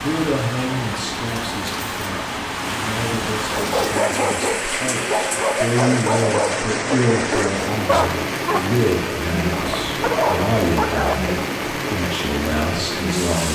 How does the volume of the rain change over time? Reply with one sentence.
The volume of the rain stays about the same.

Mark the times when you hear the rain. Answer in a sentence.
You can hear the rain from 0.0 to 13.4 s.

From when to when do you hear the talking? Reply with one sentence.
You can hear the talking from 0.0 to 13.4 s.